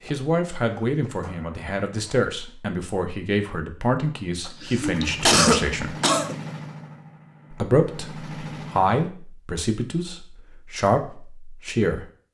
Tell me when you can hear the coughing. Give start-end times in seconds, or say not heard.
4.5-6.4.